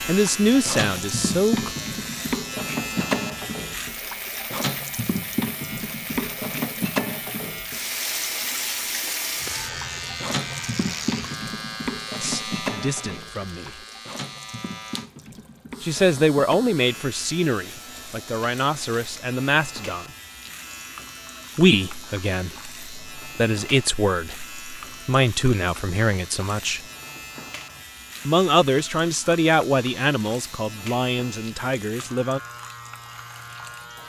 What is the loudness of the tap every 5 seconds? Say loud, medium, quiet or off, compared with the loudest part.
loud, loud, loud, quiet, quiet, quiet, quiet.